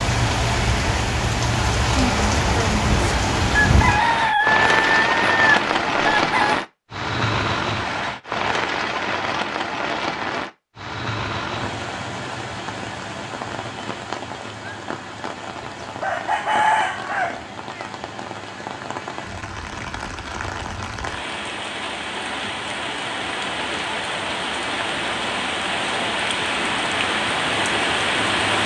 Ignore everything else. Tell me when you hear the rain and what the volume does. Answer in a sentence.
You can hear the rain from 0.0 to 28.6 s, getting quieter then louder.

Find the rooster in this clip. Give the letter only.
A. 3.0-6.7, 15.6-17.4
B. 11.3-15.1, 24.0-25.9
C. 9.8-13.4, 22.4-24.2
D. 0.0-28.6
A.